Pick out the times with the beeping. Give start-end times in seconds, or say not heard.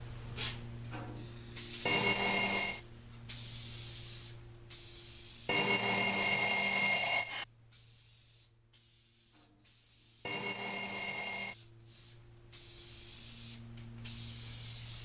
1.9-2.8, 5.5-7.5, 10.2-11.6.